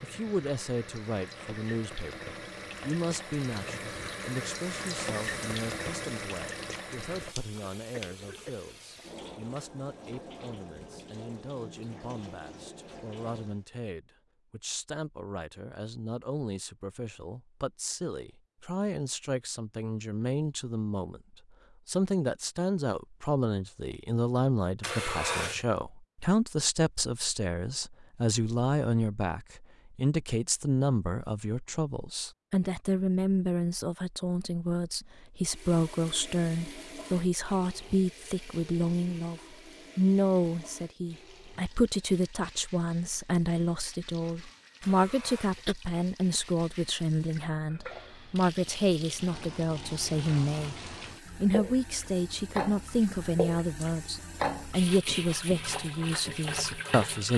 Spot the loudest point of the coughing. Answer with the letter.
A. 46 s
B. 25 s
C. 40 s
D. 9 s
B.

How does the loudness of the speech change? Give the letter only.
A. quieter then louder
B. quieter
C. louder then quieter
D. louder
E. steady
D.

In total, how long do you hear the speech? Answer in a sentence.
The speech can be heard for 57 seconds in total.